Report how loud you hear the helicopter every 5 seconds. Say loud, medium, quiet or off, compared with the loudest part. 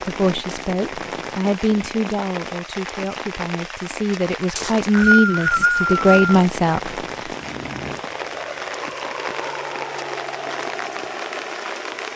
off, loud, loud.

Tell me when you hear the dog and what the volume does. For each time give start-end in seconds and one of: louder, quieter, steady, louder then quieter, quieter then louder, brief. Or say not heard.
not heard.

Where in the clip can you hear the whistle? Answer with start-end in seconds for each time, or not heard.
4.5-6.3.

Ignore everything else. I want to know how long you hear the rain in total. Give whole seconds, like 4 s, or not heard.
12 s.